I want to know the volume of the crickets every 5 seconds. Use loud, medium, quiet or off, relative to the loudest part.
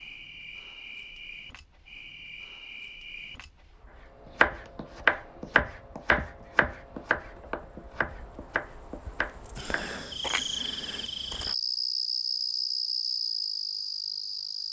quiet, quiet, loud.